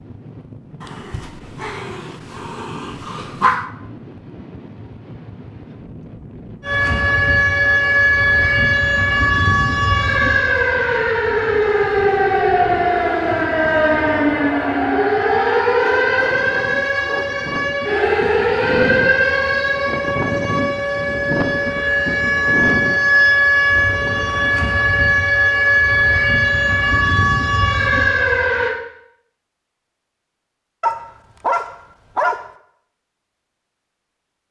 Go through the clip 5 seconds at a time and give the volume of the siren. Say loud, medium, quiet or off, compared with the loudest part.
off, loud, loud, loud, loud, loud, off.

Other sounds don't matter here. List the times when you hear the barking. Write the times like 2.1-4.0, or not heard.
0.8-3.6, 15.7-17.4, 30.8-32.5.